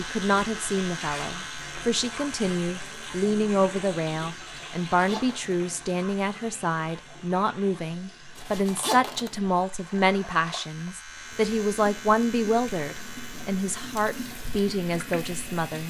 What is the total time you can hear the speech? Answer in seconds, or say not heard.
16 s.